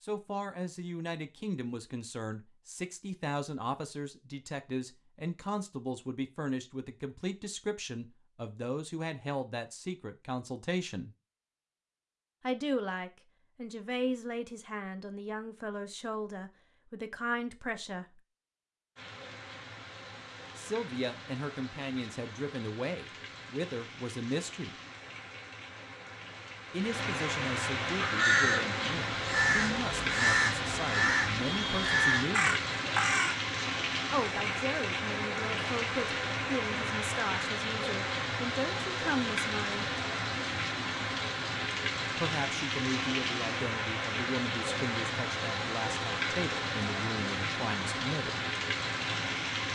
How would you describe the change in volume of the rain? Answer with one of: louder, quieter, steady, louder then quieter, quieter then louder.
louder.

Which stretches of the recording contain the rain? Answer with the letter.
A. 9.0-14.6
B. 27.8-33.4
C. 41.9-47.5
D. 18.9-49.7
D.